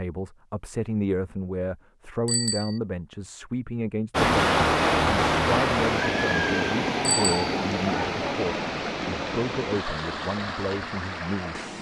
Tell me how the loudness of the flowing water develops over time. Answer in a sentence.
The loudness of the flowing water goes down.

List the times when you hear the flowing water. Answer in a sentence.
You can hear the flowing water from 4.1 to 11.7 s.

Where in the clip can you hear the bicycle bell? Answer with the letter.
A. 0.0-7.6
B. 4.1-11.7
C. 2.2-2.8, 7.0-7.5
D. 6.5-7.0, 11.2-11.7
C.